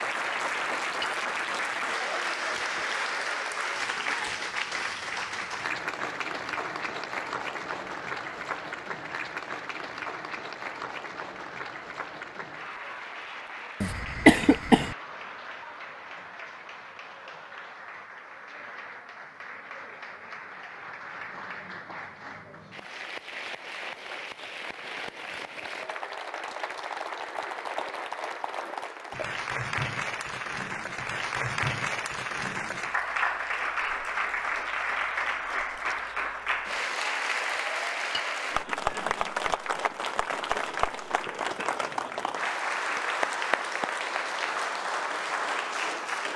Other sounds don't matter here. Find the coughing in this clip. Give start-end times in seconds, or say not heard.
13.8-14.9.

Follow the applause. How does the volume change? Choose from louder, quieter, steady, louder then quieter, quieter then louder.
quieter then louder.